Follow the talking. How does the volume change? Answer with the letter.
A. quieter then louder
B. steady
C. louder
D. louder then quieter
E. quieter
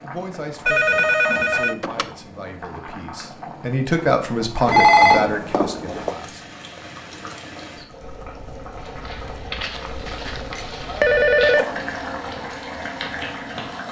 D.